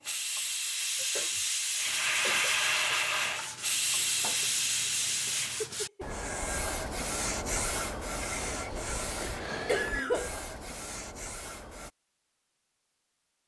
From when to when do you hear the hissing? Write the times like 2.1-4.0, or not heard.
0.0-5.7.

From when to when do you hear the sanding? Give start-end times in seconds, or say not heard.
1.9-11.9.